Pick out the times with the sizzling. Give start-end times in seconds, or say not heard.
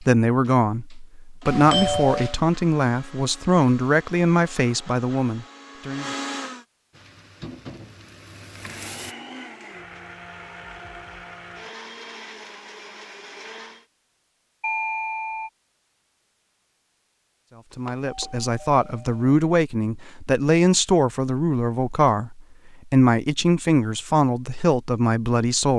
6.9-9.2.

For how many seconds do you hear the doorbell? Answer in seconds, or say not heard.
3 s.